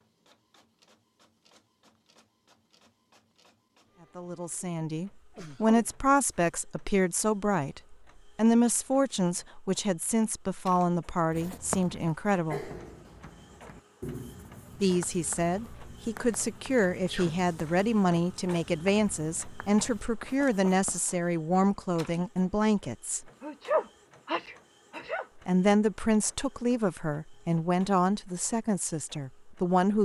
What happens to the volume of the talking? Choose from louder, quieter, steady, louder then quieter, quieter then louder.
steady.